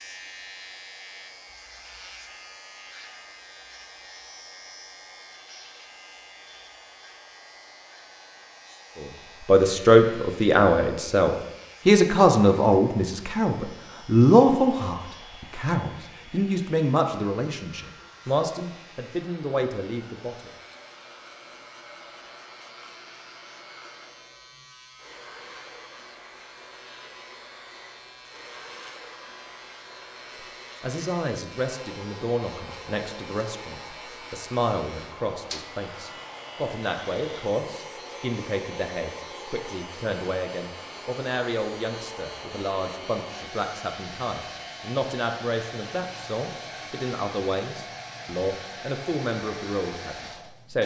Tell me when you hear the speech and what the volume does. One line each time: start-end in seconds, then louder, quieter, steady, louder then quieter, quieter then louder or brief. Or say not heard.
9.0-20.5 quieter
30.8-50.8 steady.